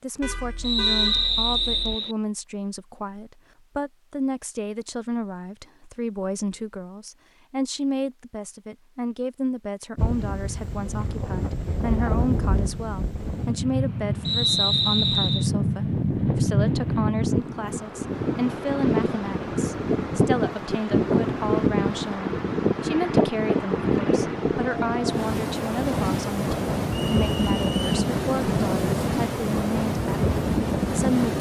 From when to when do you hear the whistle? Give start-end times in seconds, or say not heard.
0.6-2.1, 14.2-15.4, 26.9-27.9.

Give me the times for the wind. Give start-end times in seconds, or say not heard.
9.9-31.3.